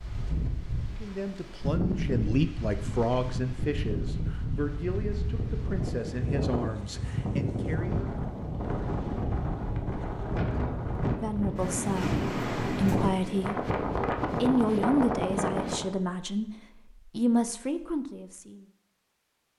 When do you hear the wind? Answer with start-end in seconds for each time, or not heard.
0.0-15.9.